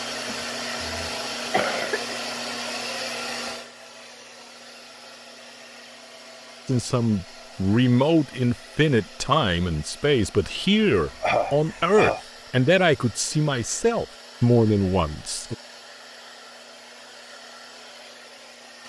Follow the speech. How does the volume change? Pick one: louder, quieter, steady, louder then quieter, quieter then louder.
steady.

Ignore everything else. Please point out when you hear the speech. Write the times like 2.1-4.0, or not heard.
6.7-15.6.